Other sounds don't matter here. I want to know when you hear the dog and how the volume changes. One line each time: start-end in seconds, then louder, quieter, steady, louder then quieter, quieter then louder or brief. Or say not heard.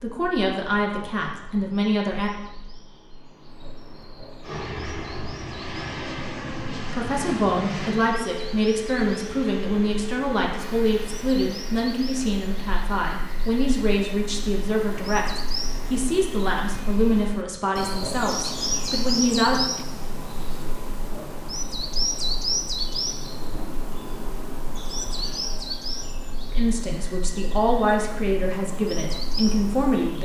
not heard.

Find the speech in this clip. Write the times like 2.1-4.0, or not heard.
0.0-2.3, 6.9-19.6, 26.5-30.1.